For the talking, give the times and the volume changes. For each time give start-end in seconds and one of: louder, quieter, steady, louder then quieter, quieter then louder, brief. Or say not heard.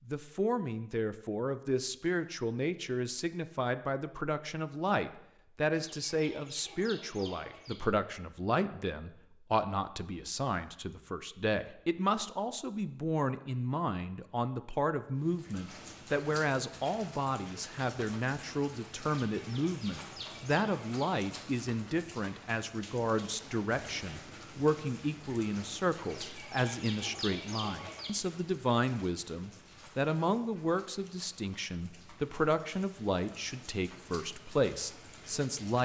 0.1-35.7 steady.